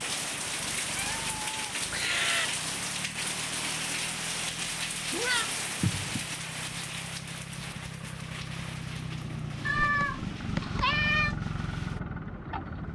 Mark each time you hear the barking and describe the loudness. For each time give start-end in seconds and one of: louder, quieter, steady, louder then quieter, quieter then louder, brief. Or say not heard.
not heard.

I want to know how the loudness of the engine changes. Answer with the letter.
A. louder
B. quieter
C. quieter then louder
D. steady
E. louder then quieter
A.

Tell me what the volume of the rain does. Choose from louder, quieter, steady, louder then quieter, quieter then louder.
quieter.